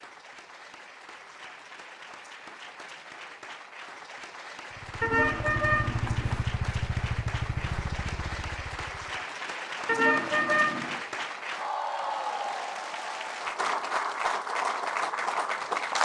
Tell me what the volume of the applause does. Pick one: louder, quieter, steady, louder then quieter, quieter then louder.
louder.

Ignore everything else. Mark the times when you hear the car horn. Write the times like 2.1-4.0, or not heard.
5.0-6.4, 9.8-11.0.